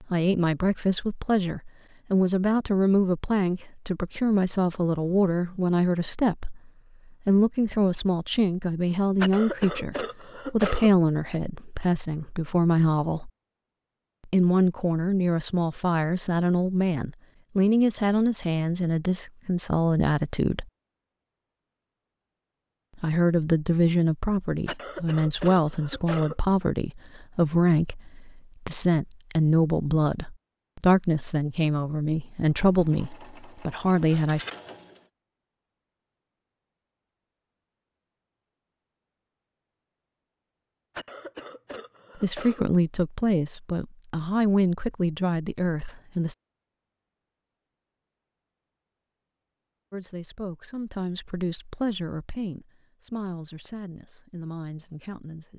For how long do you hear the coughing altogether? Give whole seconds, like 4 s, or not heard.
5 s.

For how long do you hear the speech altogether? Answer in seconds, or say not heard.
41 s.